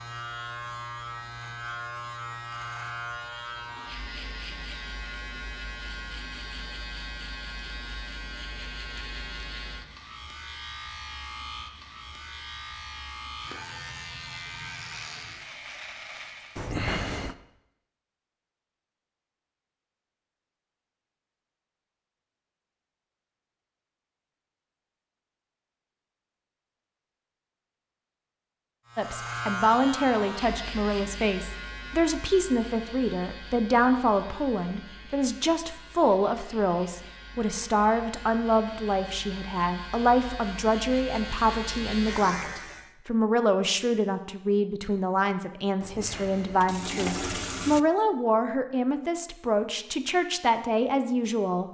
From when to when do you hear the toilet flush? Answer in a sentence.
You can hear the toilet flush from 16.6 to 17.4 s and from 45.8 to 47.8 s.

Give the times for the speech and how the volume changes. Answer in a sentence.
You can hear the speech from 28.9 to 51.6 s, at a steady volume.